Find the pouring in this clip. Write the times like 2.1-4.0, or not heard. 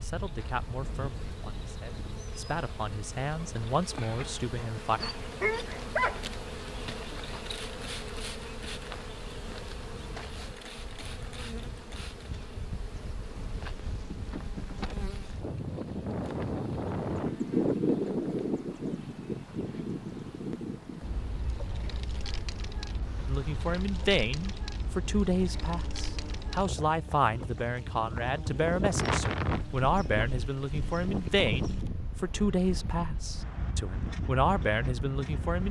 not heard.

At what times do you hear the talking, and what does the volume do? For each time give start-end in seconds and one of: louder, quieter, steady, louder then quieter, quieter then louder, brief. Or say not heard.
0.0-5.0 quieter then louder
23.2-35.6 steady.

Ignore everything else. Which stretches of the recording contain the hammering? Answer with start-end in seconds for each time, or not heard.
not heard.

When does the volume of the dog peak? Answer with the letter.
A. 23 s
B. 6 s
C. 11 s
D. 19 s
B.